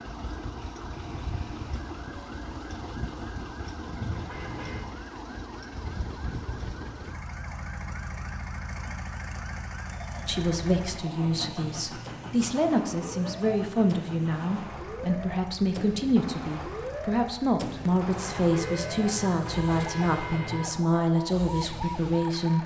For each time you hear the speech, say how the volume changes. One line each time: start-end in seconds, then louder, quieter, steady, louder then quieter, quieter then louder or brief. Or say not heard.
10.2-22.6 steady.